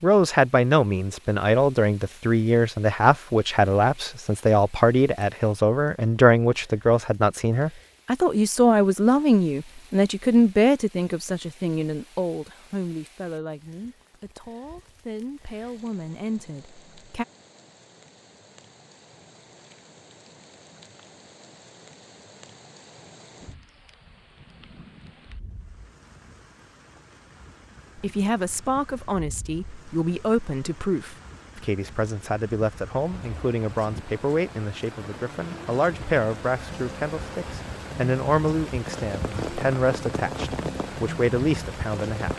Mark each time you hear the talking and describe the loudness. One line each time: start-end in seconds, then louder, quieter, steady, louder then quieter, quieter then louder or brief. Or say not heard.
0.0-17.2 quieter
27.9-42.3 steady.